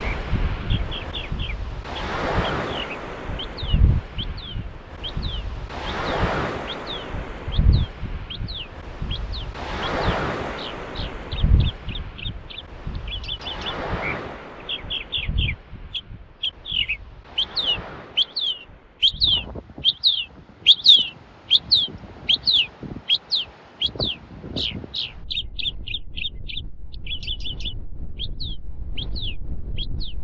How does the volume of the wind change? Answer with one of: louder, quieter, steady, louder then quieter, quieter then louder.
quieter.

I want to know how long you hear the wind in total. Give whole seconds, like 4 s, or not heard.
30 s.